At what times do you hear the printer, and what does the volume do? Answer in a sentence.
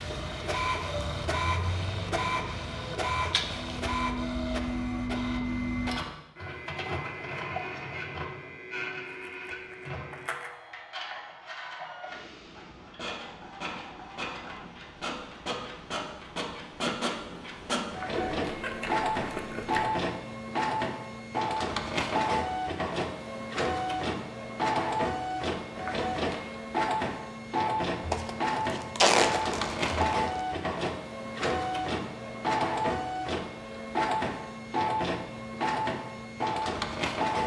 You can hear the printer from 0.0 to 37.4 s, getting quieter then louder.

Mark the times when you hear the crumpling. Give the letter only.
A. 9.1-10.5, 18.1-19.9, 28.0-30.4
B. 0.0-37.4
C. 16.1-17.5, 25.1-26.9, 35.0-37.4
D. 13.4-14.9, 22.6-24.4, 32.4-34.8
A.